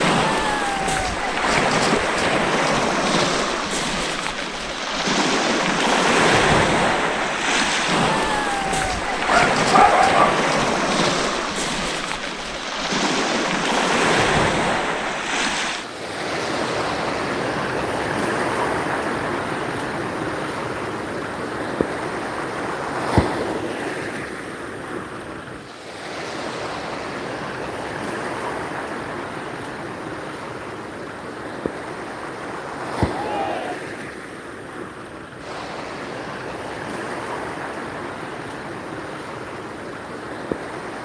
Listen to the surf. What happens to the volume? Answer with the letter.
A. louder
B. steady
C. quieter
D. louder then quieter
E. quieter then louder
C.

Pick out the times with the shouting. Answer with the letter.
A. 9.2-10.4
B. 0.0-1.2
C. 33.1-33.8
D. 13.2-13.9
C.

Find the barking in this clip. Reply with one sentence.
You can hear the barking from 9.2 to 10.4 s.